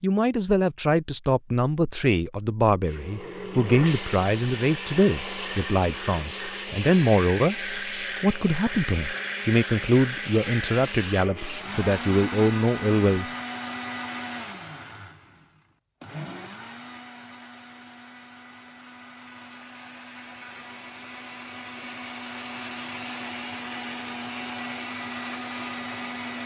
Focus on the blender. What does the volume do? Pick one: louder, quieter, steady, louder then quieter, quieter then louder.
quieter then louder.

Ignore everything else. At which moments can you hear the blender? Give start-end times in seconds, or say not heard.
2.9-26.4.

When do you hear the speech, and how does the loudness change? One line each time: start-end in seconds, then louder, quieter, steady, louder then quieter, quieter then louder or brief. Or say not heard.
0.0-13.2 steady.